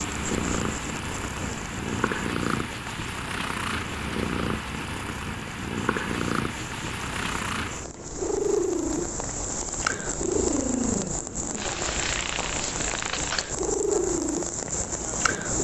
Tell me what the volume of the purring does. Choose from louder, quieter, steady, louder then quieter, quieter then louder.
steady.